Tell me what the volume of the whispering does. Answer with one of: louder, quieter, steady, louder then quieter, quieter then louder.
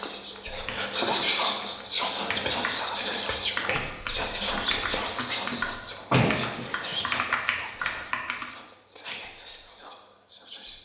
quieter.